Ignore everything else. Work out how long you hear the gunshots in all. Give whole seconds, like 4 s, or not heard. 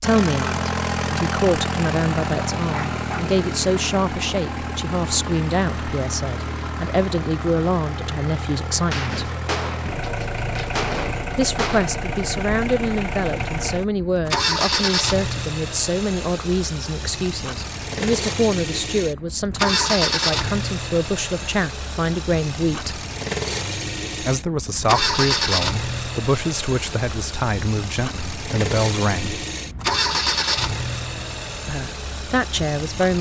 3 s.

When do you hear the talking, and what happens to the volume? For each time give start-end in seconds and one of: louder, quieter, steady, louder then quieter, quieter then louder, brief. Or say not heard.
0.0-9.3 steady
11.3-23.1 steady
24.2-29.4 steady
31.6-33.1 brief.